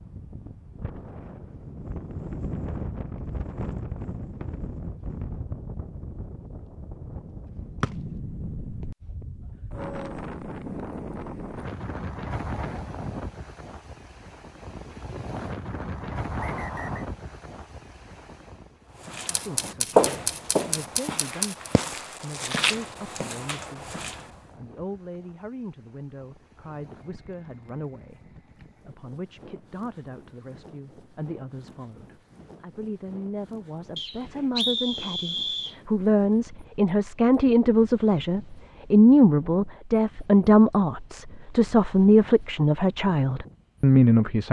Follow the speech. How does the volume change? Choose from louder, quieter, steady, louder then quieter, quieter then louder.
louder.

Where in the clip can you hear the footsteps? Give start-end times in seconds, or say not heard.
19.0-24.2.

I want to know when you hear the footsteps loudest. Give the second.
20 s.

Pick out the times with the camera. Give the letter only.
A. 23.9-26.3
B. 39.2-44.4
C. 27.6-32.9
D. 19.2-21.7
D.